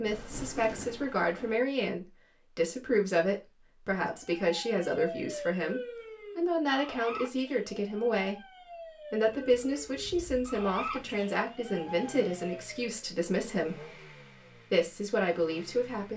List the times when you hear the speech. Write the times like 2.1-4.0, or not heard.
0.0-8.4, 9.1-13.9, 14.7-16.1.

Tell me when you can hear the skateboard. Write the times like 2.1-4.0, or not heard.
not heard.